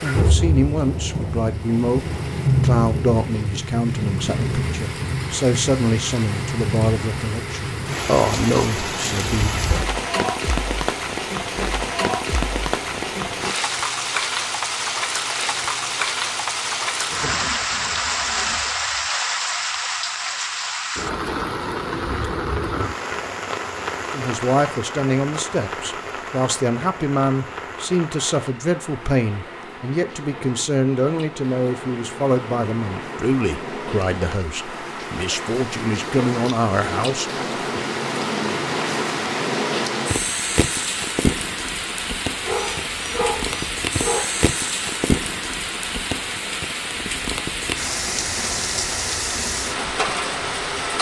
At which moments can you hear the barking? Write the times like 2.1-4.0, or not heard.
42.5-44.2.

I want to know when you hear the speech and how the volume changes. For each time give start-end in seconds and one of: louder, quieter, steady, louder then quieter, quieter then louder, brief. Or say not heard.
0.0-9.6 steady
24.1-37.8 steady.